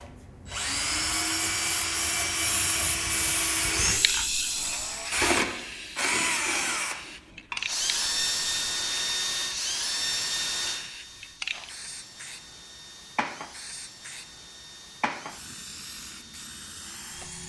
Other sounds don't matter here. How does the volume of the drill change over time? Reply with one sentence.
The volume of the drill goes down.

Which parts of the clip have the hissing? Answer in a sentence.
You can hear the hissing from 0.0 to 17.4 s.